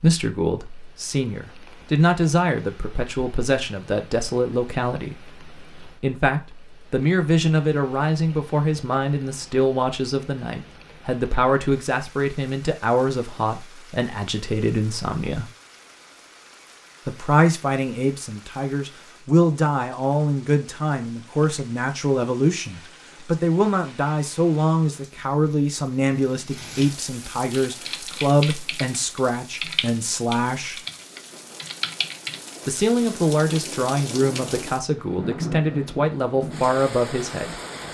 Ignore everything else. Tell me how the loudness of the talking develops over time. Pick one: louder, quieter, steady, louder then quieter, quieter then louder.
steady.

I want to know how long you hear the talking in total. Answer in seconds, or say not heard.
34 s.